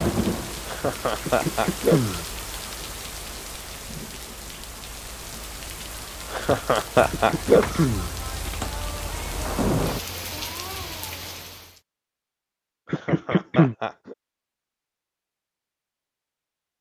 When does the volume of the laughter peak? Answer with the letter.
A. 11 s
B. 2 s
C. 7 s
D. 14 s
C.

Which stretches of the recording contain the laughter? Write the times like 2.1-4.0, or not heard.
0.7-2.2, 6.3-7.8, 12.9-14.2.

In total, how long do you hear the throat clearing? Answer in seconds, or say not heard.
3 s.